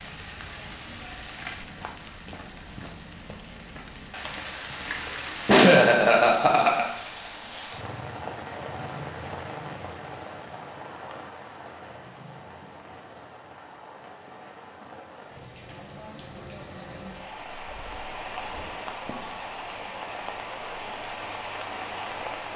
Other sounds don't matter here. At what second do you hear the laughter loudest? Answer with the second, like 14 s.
6 s.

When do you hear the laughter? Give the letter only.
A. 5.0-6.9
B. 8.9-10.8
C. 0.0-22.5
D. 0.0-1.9
A.